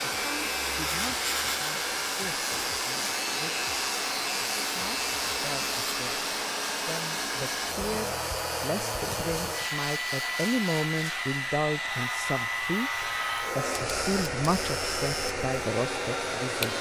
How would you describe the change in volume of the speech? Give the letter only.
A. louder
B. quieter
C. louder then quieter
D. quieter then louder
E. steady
A.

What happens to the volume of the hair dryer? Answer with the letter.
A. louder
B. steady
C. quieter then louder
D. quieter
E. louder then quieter
B.